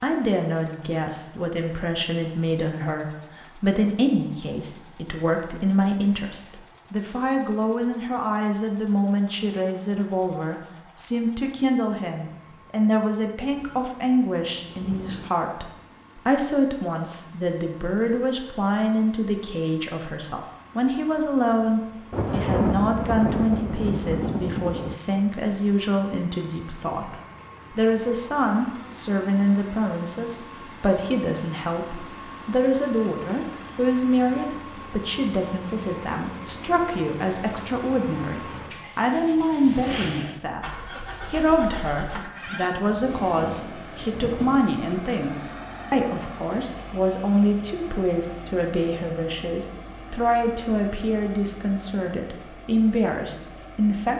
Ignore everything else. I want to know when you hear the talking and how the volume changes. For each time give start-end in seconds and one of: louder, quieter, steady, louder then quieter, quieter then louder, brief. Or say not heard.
0.0-27.1 steady
27.8-54.1 steady.